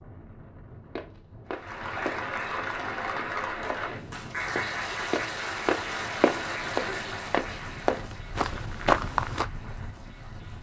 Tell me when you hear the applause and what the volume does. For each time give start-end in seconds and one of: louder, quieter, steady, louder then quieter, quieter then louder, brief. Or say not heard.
1.4-10.5 quieter.